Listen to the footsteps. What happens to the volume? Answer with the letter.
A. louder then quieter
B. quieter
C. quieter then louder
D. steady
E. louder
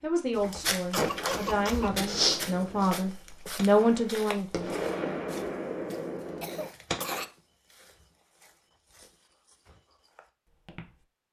B.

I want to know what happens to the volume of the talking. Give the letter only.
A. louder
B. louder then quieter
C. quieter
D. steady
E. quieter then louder
A.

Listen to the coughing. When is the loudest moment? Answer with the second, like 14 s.
1 s.